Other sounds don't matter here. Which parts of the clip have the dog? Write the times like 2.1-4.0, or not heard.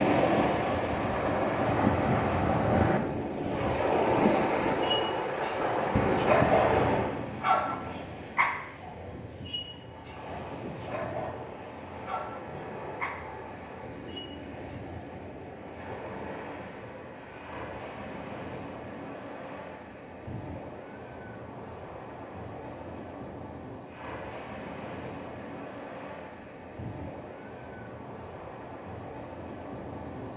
4.7-15.3.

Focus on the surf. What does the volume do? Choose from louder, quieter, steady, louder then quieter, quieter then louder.
quieter.